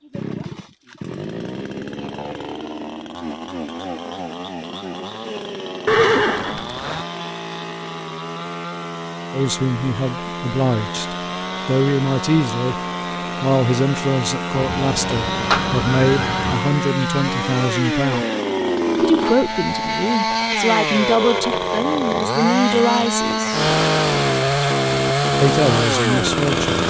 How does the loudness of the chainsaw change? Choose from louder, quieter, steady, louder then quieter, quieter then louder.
louder.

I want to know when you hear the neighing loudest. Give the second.
6 s.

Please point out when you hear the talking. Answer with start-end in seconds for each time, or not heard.
9.3-12.8, 13.4-18.2, 19.0-23.7, 25.4-26.8.